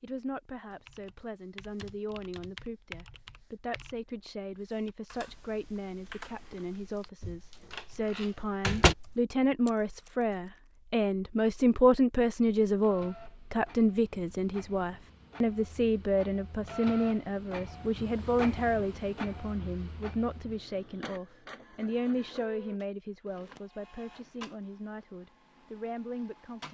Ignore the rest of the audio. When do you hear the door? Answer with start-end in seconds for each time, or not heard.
7.2-8.9.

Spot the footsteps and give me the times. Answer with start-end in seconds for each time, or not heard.
not heard.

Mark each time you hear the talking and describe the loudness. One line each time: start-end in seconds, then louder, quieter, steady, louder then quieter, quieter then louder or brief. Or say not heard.
0.0-26.6 louder then quieter.